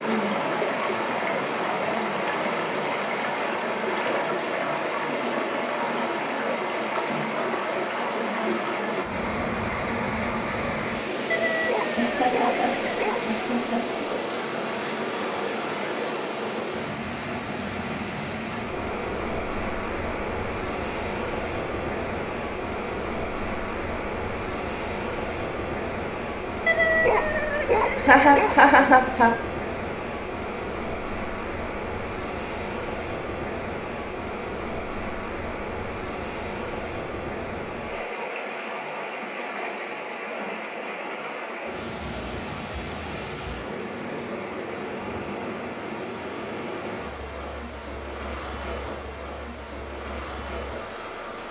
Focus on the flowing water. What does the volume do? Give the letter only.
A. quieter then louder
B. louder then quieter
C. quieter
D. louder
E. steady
C.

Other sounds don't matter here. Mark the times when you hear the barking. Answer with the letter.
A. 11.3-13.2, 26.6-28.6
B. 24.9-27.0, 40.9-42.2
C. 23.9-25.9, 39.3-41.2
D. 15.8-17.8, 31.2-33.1
A.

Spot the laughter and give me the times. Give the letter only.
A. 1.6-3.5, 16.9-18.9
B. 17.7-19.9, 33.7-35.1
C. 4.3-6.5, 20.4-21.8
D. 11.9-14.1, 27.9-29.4
D.